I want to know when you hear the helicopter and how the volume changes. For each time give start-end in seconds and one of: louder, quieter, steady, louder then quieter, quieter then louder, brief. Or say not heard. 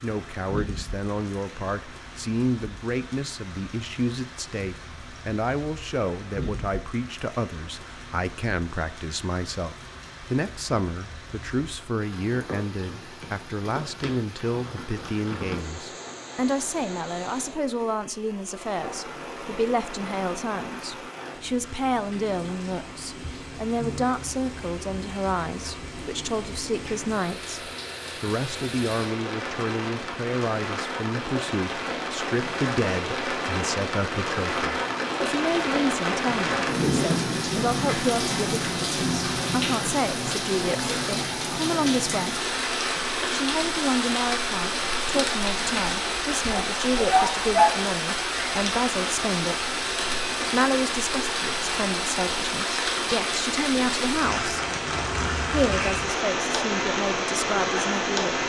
not heard.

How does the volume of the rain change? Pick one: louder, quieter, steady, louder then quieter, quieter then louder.
louder.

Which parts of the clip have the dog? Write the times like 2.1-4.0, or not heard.
46.5-47.9.